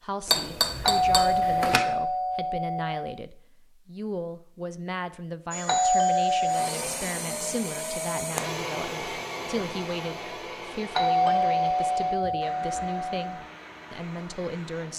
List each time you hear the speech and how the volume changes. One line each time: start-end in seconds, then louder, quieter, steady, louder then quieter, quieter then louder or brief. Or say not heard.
0.0-14.9 steady.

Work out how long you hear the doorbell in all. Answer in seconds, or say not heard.
6 s.